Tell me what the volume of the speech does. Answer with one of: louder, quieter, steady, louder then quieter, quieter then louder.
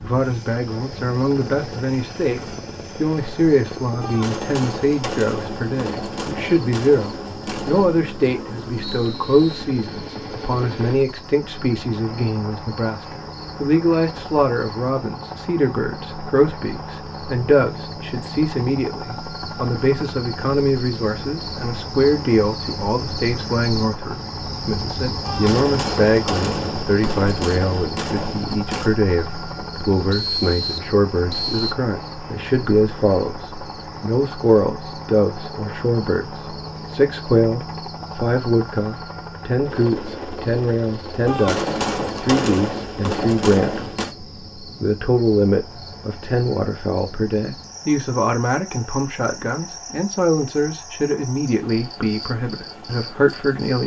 steady.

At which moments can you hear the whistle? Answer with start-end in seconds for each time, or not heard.
8.8-9.7, 30.1-31.8.